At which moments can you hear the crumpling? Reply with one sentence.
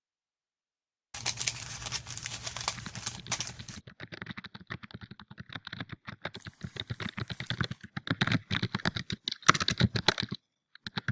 You can hear the crumpling from 1.1 to 3.8 s and from 6.3 to 7.8 s.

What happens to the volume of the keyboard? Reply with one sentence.
The volume of the keyboard goes up.